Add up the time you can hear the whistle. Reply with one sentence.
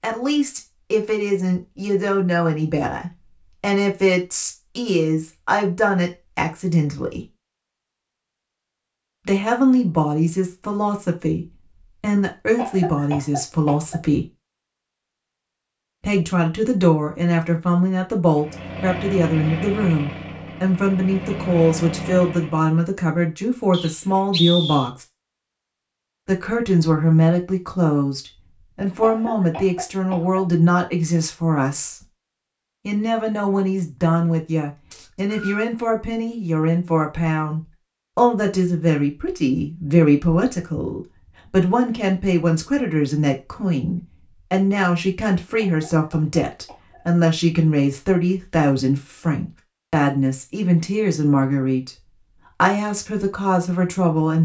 You can hear the whistle for 2 seconds altogether.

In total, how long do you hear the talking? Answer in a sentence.
You can hear the talking for 48 seconds altogether.